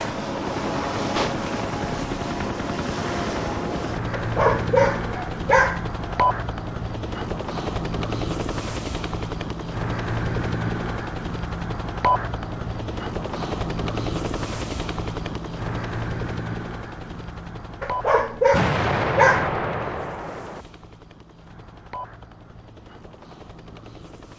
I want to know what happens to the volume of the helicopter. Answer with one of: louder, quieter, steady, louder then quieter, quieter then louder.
quieter.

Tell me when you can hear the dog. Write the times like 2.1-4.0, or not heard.
4.1-6.2, 17.8-19.6.